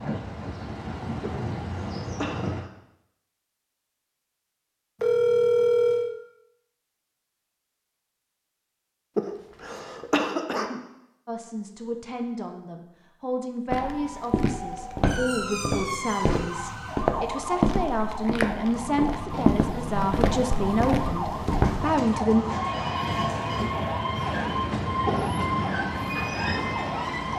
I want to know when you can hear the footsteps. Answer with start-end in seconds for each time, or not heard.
13.7-21.9.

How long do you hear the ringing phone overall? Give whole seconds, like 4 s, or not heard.
3 s.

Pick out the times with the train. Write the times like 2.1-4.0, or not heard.
0.0-2.7, 18.6-27.3.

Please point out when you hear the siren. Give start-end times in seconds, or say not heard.
13.8-27.3.